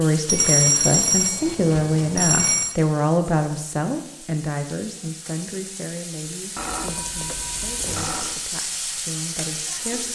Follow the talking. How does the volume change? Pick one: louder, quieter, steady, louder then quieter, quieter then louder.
quieter.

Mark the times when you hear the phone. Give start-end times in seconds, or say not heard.
0.2-2.8, 6.5-8.4.